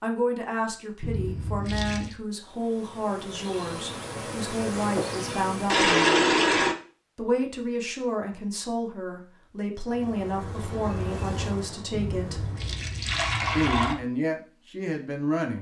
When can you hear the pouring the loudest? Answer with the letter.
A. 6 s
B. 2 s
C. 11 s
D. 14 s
A.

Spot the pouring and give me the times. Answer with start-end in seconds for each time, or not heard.
1.0-2.1, 5.7-6.8, 11.9-13.9.